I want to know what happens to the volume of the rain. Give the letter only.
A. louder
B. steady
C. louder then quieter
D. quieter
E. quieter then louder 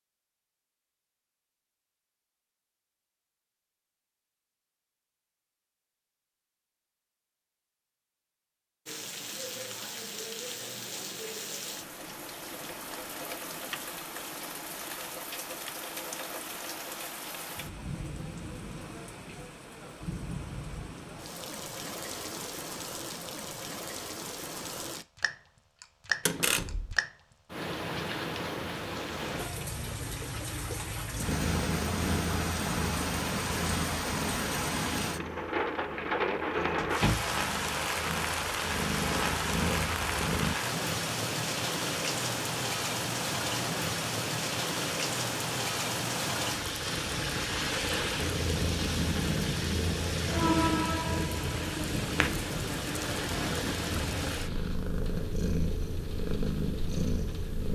A.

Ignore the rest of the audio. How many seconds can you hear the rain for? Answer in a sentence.
You can hear the rain for 49 seconds altogether.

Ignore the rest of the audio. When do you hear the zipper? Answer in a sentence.
The zipper can't be heard in this clip.